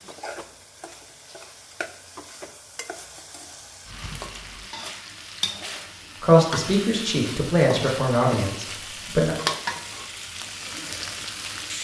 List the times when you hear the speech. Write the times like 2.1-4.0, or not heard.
6.2-9.3.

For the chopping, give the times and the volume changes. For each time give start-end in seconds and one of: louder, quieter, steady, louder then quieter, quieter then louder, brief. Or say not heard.
not heard.